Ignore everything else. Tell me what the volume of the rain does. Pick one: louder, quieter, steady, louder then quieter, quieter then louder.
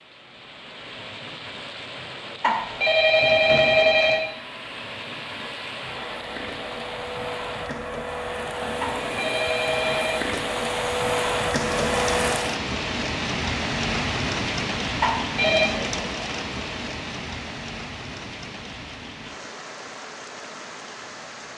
louder then quieter.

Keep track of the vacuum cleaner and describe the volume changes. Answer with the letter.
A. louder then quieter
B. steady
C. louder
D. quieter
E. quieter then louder
C.